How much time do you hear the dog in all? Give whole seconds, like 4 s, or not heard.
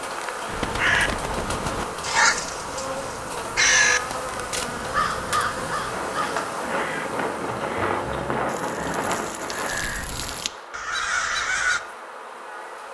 not heard.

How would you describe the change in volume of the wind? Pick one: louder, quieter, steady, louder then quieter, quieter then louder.
louder.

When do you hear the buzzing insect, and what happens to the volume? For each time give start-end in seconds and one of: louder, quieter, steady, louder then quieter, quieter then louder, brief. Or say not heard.
0.0-12.8 quieter.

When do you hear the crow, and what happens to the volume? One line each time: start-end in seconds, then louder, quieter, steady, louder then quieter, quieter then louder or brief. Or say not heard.
0.5-11.8 quieter then louder.